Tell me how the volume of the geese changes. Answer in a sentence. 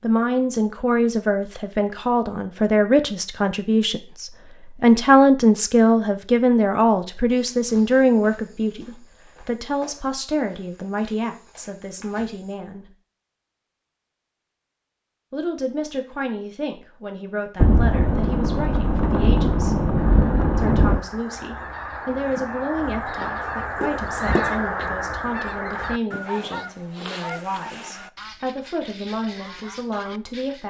The volume of the geese goes up, then down.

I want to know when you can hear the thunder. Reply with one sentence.
The thunder can be heard from 17.6 to 21.0 s.